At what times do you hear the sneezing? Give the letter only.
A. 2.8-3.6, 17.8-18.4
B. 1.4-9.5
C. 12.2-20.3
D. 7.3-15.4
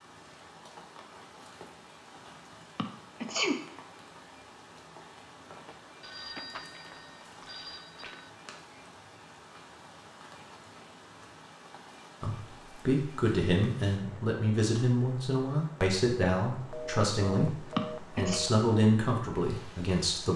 A.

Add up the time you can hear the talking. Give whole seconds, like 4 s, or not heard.
8 s.